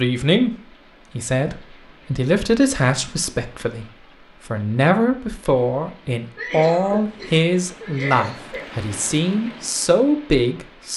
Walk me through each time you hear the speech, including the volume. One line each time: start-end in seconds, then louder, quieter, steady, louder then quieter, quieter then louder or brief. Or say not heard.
0.0-10.9 steady.